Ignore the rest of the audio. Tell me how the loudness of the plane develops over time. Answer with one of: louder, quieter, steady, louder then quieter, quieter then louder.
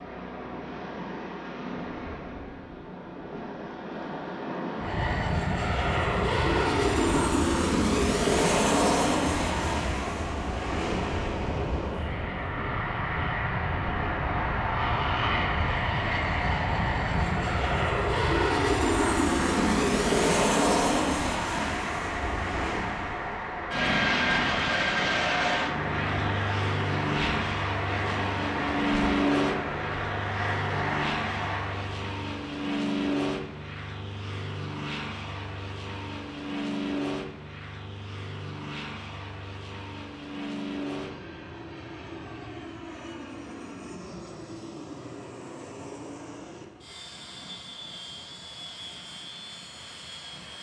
quieter.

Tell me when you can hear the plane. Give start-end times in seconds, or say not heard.
4.8-50.5.